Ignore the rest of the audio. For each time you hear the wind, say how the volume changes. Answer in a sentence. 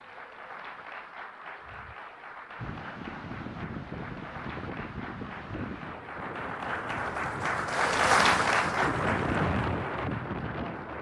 The wind can be heard from 2.5 to 10.9 s, getting louder.